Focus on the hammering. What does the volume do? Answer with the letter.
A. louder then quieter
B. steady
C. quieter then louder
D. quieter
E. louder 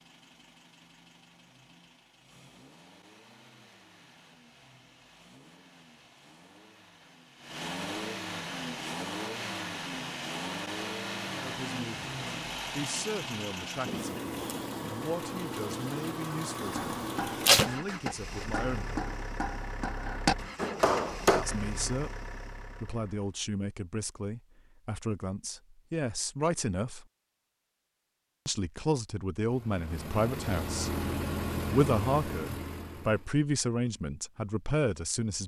E.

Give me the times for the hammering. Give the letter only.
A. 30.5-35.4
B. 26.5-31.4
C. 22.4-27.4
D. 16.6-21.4
D.